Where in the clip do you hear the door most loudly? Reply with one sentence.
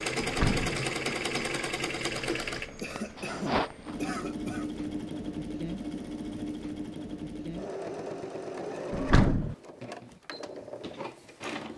The volume of the door peaks at 9 seconds.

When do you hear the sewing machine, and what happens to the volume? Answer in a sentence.
The sewing machine can be heard from 0.0 to 11.7 s, getting quieter.